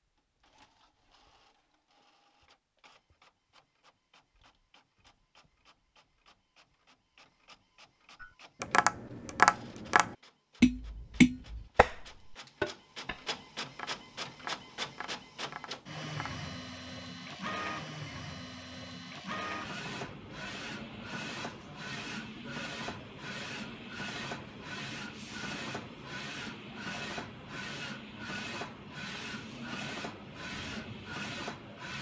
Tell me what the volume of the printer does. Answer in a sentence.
The volume of the printer goes up.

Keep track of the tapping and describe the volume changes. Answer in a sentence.
The loudness of the tapping goes down.